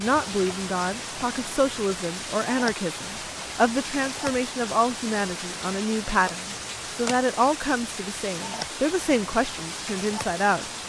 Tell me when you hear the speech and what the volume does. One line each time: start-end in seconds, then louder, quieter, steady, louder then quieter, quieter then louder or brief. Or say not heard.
0.0-10.7 steady.